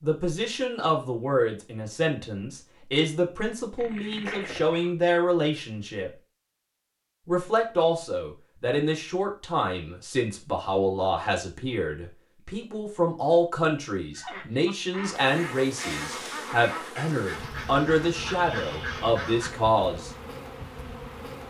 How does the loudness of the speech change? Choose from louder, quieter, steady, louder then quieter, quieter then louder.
steady.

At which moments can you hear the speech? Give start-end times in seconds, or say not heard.
0.0-6.1, 7.2-20.1.